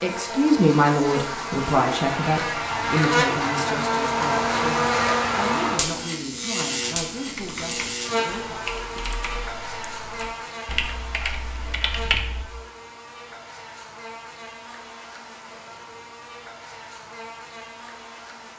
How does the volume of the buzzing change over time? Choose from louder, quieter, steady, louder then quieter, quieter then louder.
quieter.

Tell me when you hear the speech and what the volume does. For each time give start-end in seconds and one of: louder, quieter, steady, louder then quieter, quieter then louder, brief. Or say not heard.
0.0-8.7 quieter.